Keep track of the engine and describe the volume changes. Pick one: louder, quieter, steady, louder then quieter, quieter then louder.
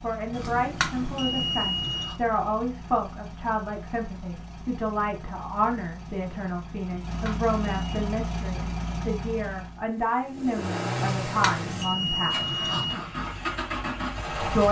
louder.